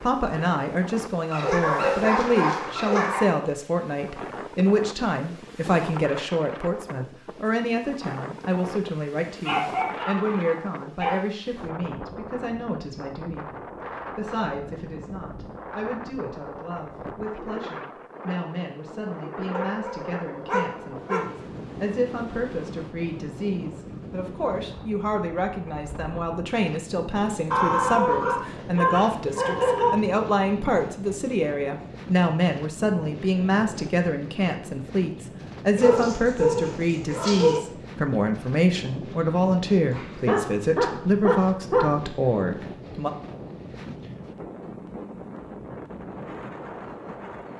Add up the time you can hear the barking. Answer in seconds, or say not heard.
12 s.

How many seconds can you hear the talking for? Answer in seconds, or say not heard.
43 s.